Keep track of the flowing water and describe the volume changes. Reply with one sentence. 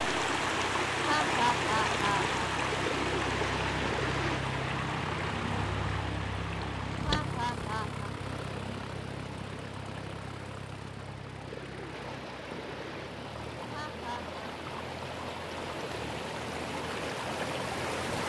The loudness of the flowing water goes down, then up.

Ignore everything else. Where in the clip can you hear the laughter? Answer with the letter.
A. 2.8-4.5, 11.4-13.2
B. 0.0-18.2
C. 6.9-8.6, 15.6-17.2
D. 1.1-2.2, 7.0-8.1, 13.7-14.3
D.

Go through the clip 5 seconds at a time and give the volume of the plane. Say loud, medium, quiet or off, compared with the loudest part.
loud, loud, medium, medium.